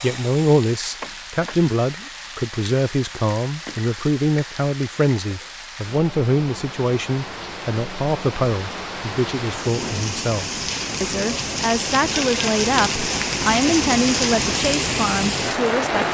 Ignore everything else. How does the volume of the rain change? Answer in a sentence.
The loudness of the rain goes up.